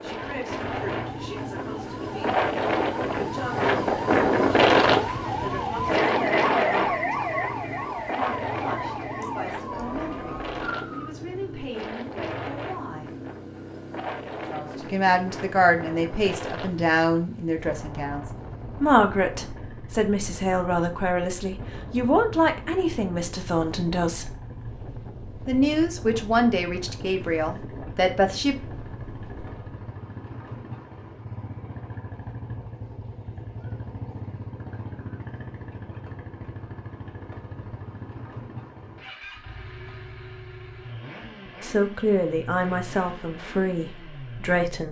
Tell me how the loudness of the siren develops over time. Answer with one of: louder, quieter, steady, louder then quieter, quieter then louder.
louder then quieter.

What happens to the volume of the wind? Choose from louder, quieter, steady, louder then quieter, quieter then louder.
quieter.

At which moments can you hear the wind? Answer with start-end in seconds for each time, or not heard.
0.0-29.8.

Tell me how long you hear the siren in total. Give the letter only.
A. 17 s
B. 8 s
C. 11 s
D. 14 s
C.